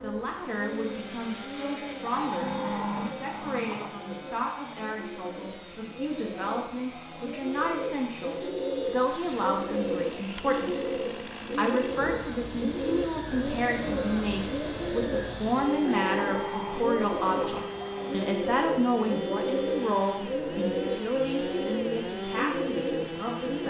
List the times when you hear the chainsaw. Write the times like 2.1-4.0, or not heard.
0.0-23.6.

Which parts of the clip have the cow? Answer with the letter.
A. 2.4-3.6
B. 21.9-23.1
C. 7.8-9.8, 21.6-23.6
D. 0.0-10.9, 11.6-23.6
A.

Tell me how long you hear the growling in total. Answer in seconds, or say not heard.
4 s.